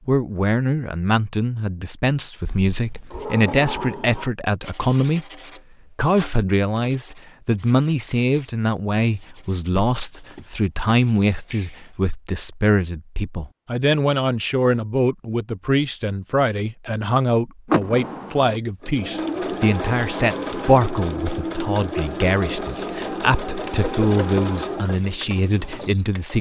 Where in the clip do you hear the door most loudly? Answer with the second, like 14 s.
18 s.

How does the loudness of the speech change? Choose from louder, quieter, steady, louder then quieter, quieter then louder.
steady.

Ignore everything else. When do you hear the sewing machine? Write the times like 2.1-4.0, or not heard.
18.4-26.3.